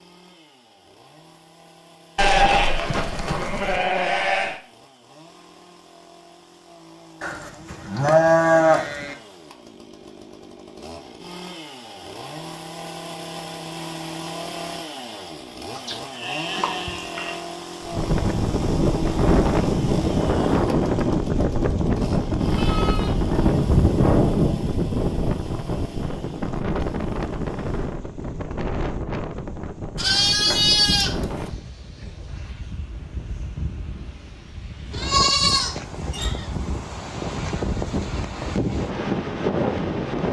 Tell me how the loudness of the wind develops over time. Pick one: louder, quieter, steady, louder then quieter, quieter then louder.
quieter then louder.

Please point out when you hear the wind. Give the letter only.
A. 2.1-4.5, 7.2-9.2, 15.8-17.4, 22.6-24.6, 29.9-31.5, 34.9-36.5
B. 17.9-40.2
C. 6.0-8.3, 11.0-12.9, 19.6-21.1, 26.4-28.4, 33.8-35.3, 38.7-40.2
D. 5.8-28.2
B.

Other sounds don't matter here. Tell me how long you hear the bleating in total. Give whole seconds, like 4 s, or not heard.
11 s.